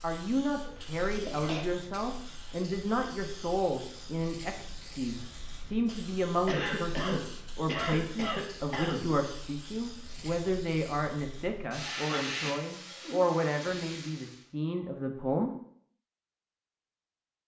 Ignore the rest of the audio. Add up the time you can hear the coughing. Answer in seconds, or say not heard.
5 s.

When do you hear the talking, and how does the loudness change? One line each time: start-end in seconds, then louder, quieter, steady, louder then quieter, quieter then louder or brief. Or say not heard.
0.0-15.5 steady.